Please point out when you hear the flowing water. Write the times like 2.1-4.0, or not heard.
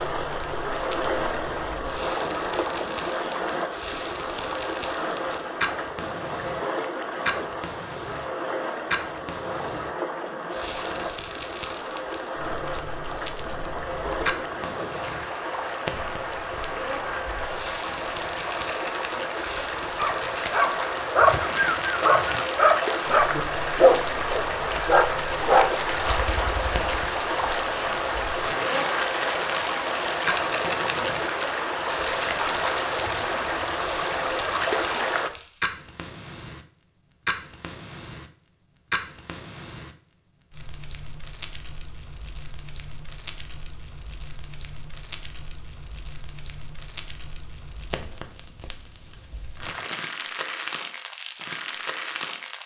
0.0-35.3.